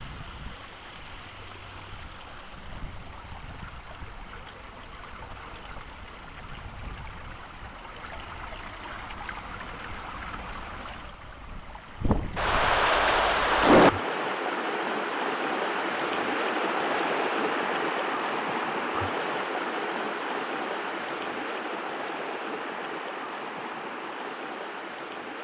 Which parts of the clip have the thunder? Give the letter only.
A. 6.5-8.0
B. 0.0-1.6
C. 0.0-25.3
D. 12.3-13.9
D.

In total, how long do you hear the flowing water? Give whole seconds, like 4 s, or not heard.
25 s.